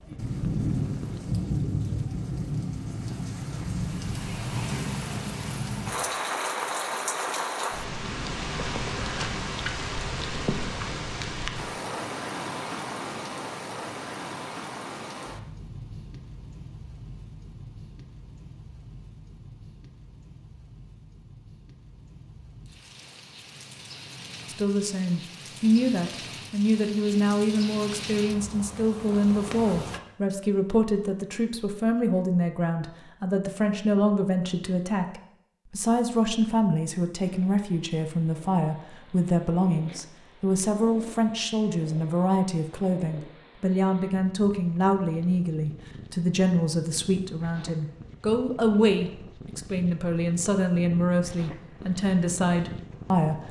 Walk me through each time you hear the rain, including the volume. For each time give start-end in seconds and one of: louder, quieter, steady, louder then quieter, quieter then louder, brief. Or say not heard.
0.0-30.0 quieter then louder.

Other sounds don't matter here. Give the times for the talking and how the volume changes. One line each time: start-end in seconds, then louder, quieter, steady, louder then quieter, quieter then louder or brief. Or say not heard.
24.4-53.4 steady.